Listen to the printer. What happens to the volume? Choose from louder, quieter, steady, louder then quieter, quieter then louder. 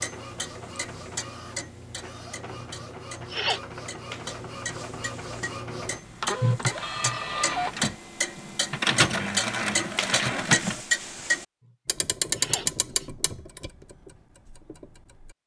louder.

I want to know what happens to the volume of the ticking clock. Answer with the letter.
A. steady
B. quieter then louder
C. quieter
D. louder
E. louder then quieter
D.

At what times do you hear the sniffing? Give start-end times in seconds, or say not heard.
2.5-3.6, 6.4-7.2, 11.7-13.1.